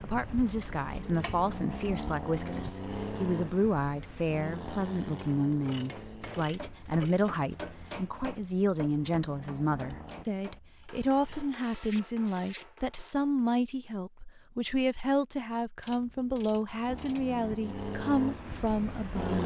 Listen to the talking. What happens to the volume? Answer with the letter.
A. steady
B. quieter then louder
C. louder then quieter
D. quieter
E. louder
A.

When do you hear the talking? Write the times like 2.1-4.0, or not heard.
0.0-19.4.